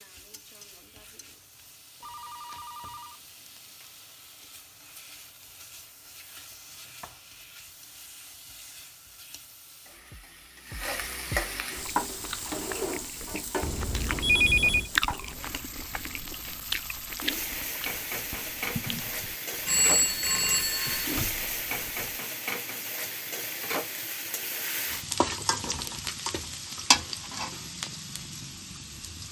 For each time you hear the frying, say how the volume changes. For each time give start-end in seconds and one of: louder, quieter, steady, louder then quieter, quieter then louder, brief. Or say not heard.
0.0-29.2 louder.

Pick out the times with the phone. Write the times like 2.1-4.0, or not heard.
2.0-3.9, 13.6-14.9, 19.6-21.1.